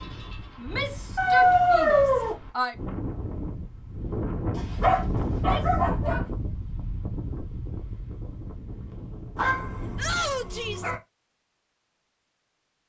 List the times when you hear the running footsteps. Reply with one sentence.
The running footsteps can't be heard in this clip.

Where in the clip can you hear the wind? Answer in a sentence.
The wind can be heard from 0.0 to 10.4 s.